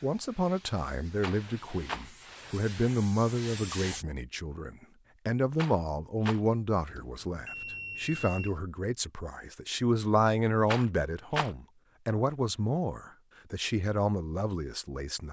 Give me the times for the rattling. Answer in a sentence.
You can hear the rattling from 1.2 to 2.0 s, from 5.5 to 6.4 s and from 10.7 to 11.5 s.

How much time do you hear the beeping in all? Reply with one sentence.
The beeping can be heard for 2 seconds in total.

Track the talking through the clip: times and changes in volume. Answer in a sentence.
The talking can be heard from 0.0 to 15.2 s, at a steady volume.